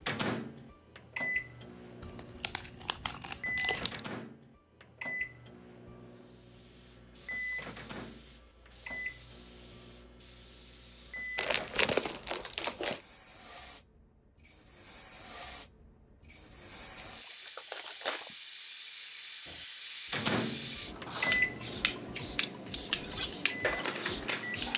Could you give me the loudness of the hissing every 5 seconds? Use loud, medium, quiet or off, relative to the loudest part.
off, quiet, quiet, medium, loud.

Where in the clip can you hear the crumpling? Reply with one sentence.
You can hear the crumpling from 2.0 to 4.0 s, from 11.3 to 13.0 s and from 17.1 to 18.4 s.